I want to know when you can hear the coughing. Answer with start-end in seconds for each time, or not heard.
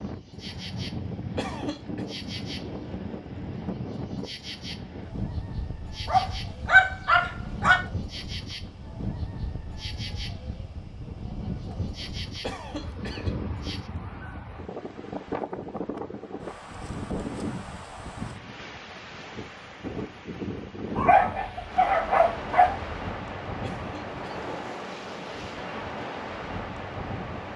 1.4-2.0, 12.4-13.3, 23.6-24.5.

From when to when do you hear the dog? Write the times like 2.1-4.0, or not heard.
6.0-7.8, 20.9-22.9.